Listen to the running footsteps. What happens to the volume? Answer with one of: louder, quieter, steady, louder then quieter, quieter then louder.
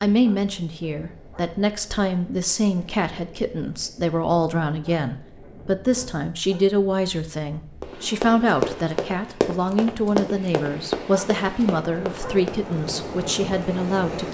quieter.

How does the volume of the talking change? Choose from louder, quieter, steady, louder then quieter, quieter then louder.
steady.